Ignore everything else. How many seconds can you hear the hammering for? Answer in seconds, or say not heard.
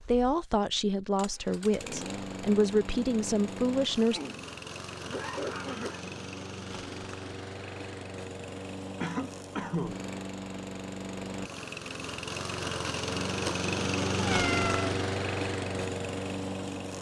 not heard.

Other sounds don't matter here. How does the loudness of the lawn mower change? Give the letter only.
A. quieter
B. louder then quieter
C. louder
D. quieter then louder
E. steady
C.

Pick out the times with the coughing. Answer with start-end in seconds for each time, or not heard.
4.1-6.2, 9.0-10.0.